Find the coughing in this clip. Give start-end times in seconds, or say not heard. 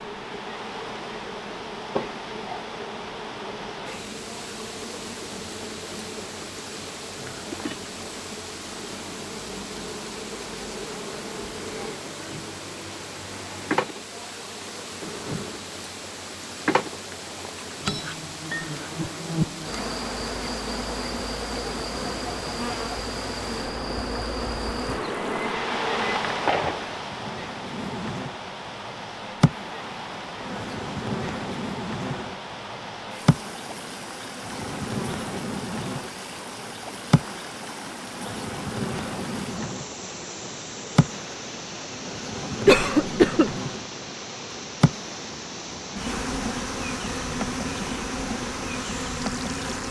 1.9-2.6, 42.6-43.5.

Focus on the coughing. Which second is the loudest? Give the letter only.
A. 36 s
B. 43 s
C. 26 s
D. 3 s
B.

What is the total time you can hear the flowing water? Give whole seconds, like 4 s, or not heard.
50 s.